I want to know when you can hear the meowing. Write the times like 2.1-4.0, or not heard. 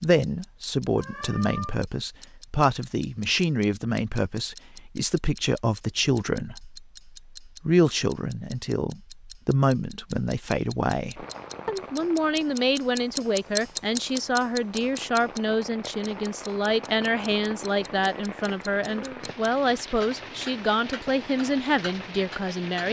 0.9-1.8.